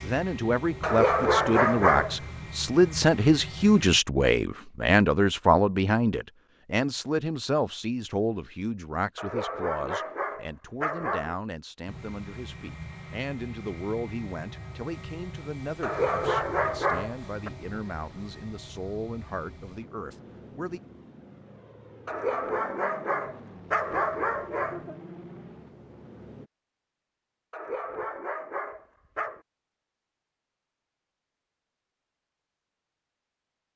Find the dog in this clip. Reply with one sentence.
The dog can be heard from 0.8 to 2.1 s, from 9.2 to 11.3 s, from 15.8 to 17.5 s, from 22.1 to 24.9 s and from 27.5 to 29.4 s.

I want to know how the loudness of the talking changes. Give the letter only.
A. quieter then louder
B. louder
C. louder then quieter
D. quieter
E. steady
D.